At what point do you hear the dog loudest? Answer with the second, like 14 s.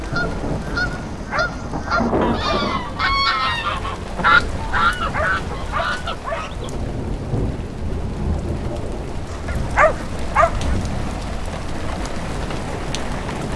10 s.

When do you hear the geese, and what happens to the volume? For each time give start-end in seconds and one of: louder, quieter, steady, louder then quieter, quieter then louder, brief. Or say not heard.
0.0-6.7 louder then quieter
9.4-11.1 brief.